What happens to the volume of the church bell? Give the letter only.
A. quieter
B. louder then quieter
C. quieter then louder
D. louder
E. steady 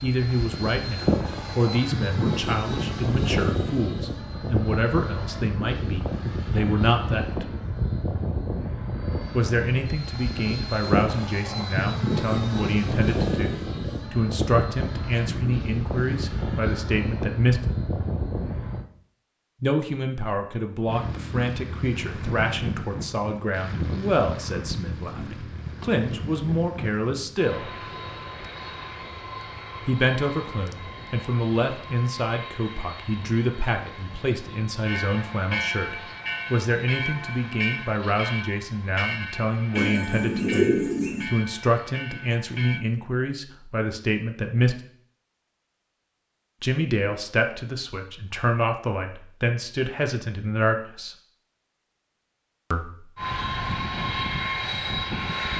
A.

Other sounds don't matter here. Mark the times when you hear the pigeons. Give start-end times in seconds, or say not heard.
39.8-41.2.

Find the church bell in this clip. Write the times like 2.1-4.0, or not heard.
34.9-42.9.